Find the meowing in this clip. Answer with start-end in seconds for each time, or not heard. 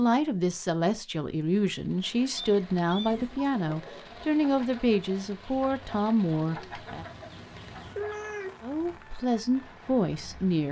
2.4-3.2, 6.8-9.1.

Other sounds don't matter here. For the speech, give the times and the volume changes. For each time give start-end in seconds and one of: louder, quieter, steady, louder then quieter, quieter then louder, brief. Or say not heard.
0.0-7.0 steady
8.6-10.6 brief.